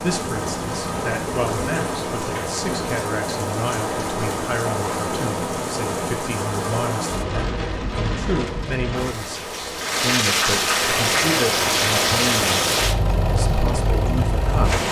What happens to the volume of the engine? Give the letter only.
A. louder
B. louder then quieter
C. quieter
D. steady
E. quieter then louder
D.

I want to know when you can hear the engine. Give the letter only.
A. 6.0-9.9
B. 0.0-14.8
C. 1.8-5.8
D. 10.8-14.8
D.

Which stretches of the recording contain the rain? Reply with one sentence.
You can hear the rain from 0.0 to 14.8 s.